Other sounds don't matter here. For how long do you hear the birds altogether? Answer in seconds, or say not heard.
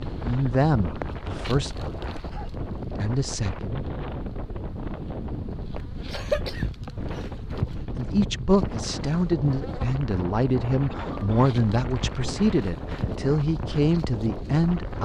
not heard.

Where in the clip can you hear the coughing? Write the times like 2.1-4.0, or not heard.
1.1-2.5, 6.1-7.7, 10.9-11.5.